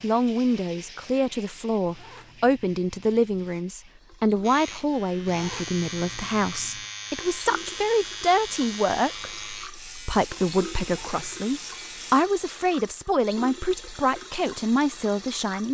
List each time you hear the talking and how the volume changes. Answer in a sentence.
The talking can be heard from 0.0 to 15.6 s, at a steady volume.